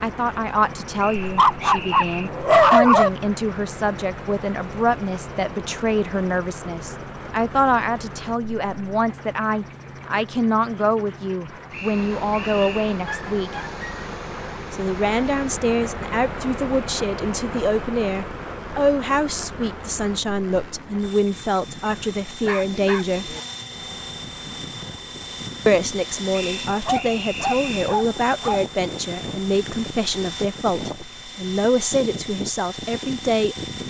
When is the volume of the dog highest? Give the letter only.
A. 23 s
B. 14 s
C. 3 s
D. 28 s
C.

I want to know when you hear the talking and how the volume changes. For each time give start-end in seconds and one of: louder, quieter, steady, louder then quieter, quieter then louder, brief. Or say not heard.
0.0-13.5 steady
14.7-23.4 steady
25.6-33.5 steady.